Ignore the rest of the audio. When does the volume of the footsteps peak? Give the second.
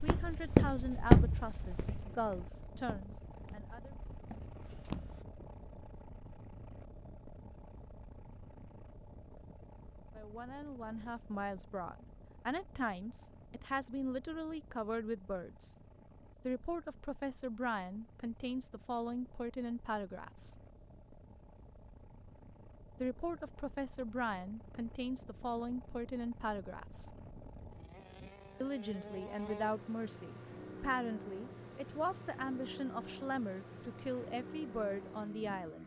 1 s.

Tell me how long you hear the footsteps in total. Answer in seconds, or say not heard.
5 s.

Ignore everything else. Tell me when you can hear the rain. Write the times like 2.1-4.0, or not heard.
not heard.